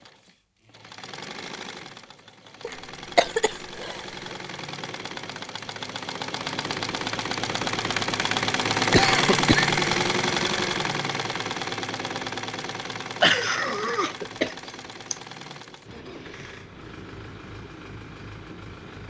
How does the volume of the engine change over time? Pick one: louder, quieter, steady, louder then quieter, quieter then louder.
louder then quieter.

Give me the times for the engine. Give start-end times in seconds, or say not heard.
0.0-19.0.